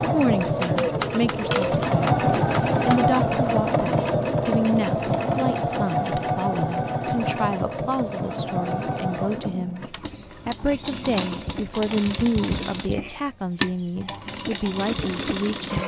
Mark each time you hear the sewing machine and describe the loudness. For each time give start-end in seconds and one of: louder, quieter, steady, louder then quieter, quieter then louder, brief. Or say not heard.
0.0-15.8 quieter.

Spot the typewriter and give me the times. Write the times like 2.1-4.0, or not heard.
0.6-3.5.